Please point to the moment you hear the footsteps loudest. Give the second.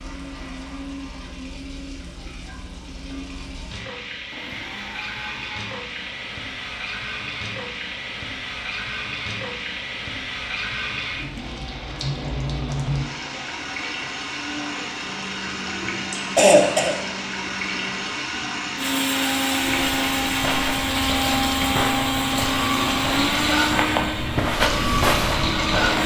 25 s.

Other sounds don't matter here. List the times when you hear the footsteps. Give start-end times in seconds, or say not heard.
19.6-26.0.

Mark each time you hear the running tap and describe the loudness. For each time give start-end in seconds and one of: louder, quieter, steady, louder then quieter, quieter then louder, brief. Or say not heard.
0.0-26.0 louder.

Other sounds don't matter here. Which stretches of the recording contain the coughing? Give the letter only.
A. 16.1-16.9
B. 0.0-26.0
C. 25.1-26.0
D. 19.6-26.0
A.